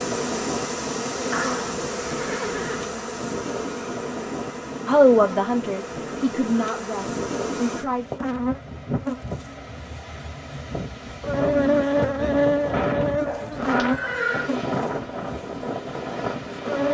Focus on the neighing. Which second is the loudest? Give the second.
14 s.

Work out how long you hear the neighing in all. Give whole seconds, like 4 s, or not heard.
3 s.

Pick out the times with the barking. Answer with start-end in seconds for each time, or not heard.
not heard.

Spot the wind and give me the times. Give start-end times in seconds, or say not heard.
0.0-16.8.